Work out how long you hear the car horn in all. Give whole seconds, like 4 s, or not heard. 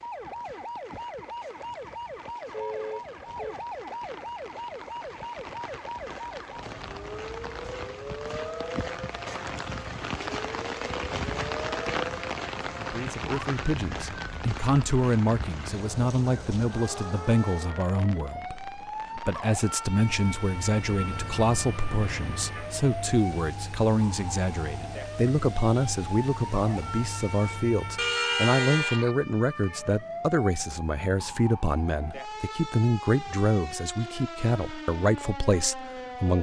4 s.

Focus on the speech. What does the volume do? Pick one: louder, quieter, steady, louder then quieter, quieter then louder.
steady.